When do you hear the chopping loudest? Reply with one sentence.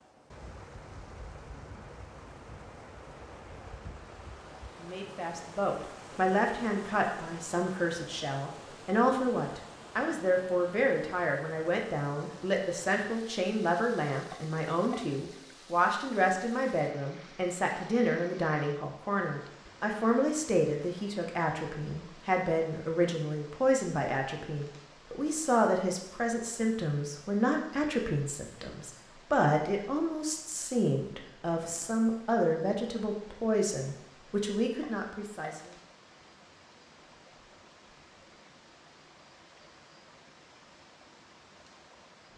The loudest moment of the chopping is at 15 seconds.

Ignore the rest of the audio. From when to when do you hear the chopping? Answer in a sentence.
The chopping can be heard from 14.3 to 15.0 s and from 34.8 to 35.5 s.